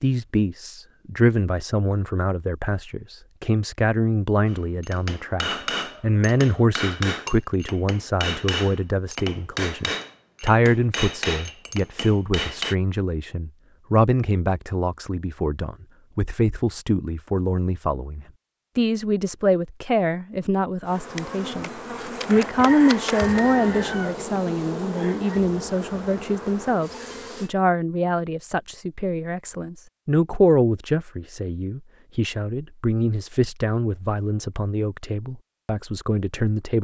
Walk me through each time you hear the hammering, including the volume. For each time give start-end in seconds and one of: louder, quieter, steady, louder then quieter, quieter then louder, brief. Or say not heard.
4.5-12.8 steady.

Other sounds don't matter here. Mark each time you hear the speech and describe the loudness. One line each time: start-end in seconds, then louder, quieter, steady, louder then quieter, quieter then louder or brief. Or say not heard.
0.0-36.7 steady.